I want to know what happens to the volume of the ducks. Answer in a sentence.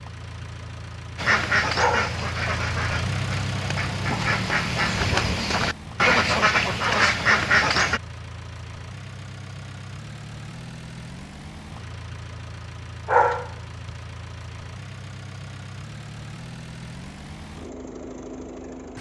The volume of the ducks goes down, then up.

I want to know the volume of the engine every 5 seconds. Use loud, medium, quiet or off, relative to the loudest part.
loud, medium, medium, medium.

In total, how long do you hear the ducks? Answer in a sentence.
The ducks can be heard for 7 seconds in total.